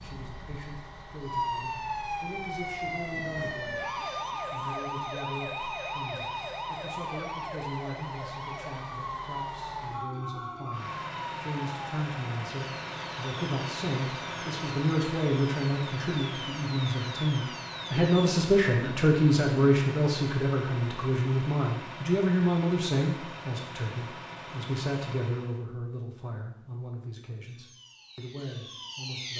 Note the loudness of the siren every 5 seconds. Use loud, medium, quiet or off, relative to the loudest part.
loud, loud, medium, medium, off, medium.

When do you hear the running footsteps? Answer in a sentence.
The running footsteps can't be heard in this clip.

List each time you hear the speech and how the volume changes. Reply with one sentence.
The speech can be heard from 0.0 to 29.3 s, getting louder then quieter.